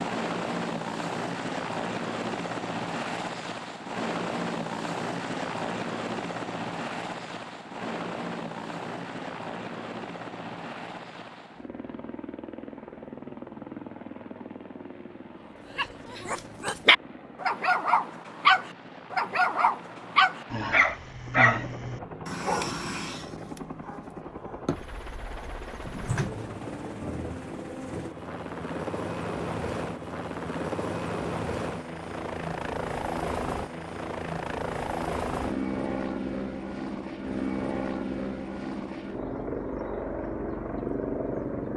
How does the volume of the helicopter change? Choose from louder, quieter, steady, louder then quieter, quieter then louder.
quieter then louder.